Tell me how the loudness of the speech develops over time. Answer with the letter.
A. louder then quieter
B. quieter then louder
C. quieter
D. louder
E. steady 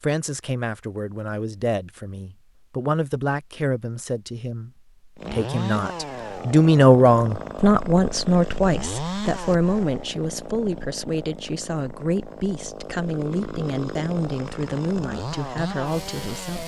A.